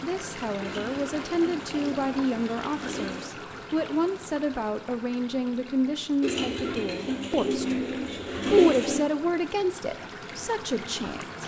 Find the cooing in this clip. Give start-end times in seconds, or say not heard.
0.6-3.3, 6.2-9.0.